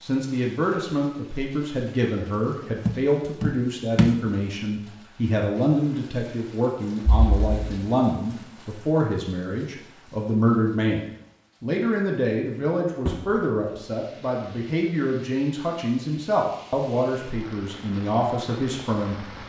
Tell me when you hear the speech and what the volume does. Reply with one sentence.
The speech can be heard from 0.0 to 11.0 s, at a steady volume; and from 11.6 to 19.2 s, at a steady volume.